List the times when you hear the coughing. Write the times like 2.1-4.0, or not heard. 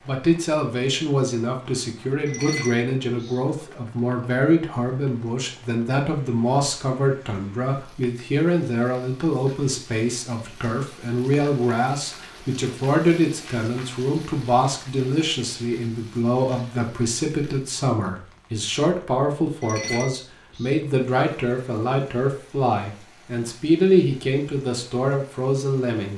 not heard.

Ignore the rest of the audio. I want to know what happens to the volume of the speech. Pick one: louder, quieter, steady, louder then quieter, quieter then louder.
steady.